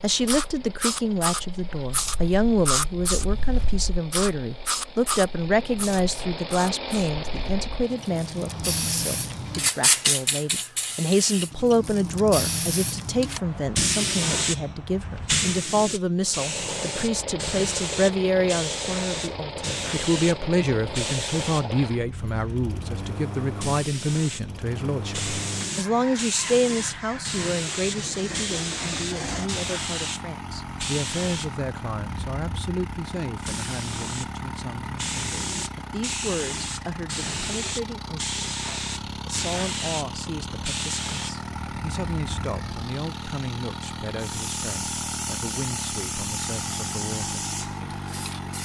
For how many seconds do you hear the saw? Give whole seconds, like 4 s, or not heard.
not heard.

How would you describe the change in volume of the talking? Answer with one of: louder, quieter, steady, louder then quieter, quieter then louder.
quieter.